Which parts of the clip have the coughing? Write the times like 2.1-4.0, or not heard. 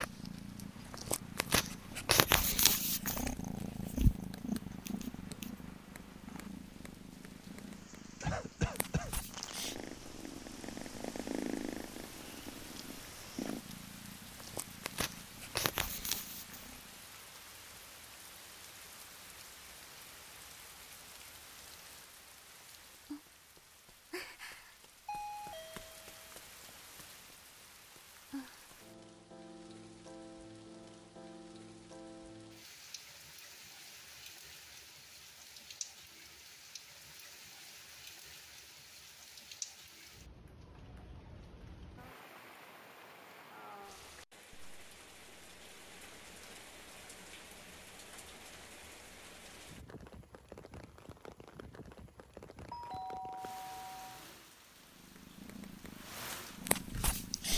8.2-9.1.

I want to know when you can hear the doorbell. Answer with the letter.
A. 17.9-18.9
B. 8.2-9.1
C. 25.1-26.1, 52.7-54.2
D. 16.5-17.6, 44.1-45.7
C.